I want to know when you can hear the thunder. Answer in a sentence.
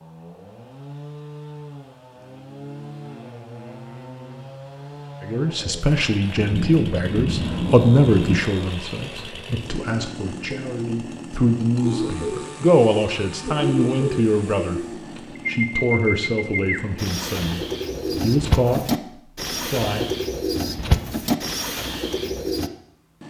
The thunder can be heard from 6.4 to 8.3 s.